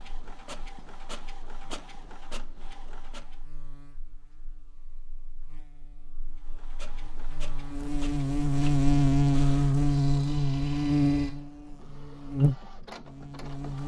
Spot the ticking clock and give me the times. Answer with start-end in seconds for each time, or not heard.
not heard.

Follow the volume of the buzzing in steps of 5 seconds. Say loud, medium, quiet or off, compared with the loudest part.
quiet, loud, loud.